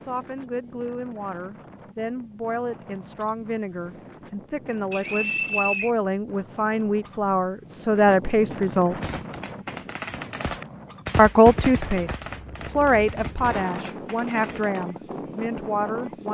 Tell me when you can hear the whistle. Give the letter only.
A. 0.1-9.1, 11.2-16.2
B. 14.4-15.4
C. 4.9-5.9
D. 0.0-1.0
C.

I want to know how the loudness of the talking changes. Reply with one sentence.
The loudness of the talking goes up, then down.